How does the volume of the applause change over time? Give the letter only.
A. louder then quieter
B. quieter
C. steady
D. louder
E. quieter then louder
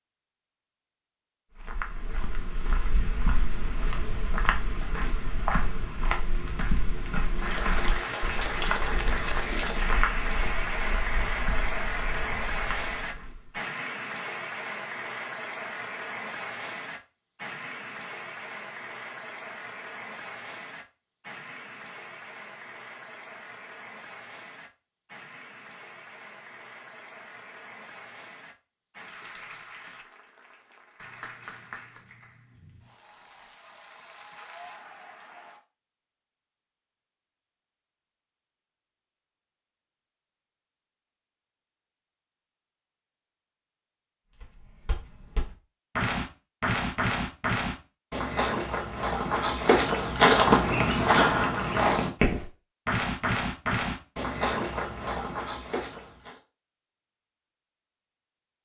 B.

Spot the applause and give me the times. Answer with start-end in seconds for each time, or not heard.
7.3-35.6.